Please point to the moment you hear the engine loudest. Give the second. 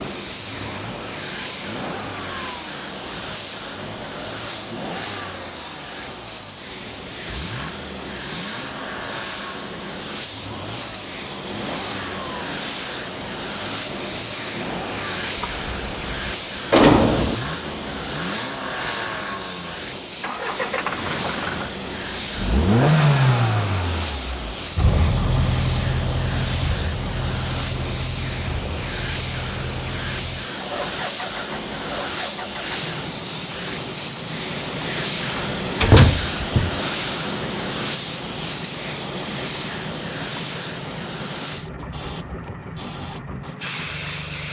23 s.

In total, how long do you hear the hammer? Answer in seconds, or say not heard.
not heard.